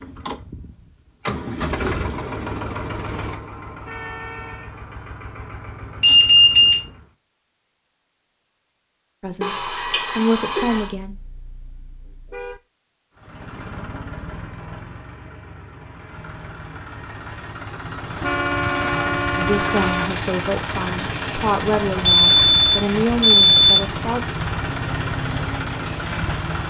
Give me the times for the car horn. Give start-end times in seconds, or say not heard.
3.9-4.7, 10.8-12.6, 18.2-20.1.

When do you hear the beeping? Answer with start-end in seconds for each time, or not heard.
6.0-6.8, 9.4-10.8, 22.2-23.8.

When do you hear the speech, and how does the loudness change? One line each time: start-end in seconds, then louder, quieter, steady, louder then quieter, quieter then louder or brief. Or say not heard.
9.2-11.2 brief
19.4-24.2 quieter then louder.